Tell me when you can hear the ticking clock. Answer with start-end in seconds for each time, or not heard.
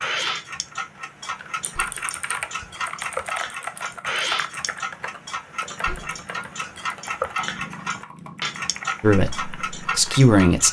0.0-10.6.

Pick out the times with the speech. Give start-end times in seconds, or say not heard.
9.0-10.6.